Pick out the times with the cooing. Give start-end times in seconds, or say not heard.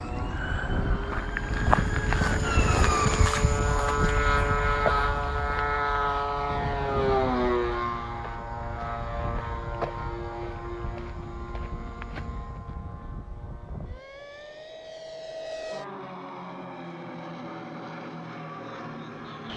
not heard.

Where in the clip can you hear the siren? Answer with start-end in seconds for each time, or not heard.
0.0-3.3.